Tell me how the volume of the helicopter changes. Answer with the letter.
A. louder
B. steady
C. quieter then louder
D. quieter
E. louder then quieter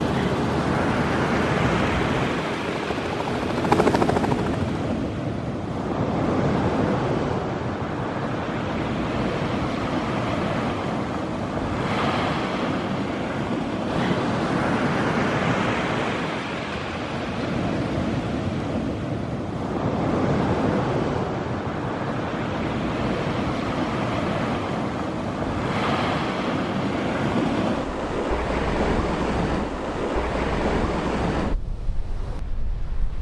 A.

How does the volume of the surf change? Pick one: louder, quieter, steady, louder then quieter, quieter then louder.
steady.